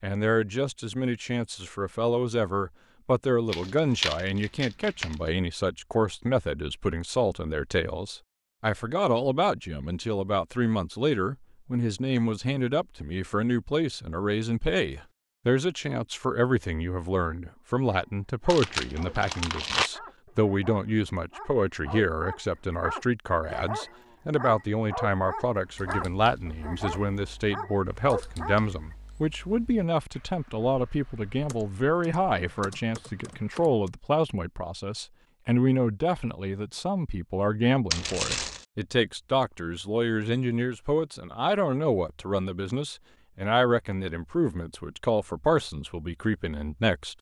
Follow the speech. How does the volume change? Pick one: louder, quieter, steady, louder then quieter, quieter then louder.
steady.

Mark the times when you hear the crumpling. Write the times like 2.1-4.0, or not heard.
3.5-5.2, 18.4-19.9, 37.9-38.6.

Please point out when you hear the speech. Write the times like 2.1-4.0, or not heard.
0.0-47.1.